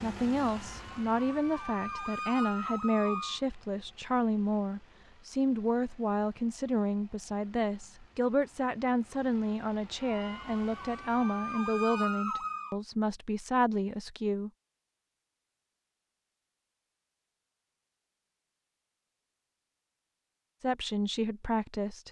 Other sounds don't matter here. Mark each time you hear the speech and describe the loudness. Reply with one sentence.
You can hear the speech from 0.0 to 14.5 s, at a steady volume; and briefly from 20.6 to 22.0 s.